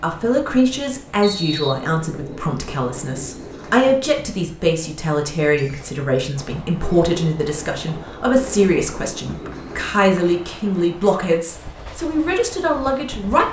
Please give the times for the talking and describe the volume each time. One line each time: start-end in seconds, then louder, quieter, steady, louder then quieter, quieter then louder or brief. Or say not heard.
0.0-13.4 steady.